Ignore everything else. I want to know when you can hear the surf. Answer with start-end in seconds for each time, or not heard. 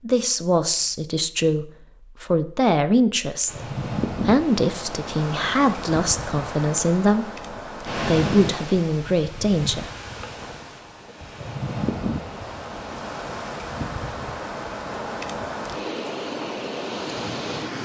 3.5-17.8.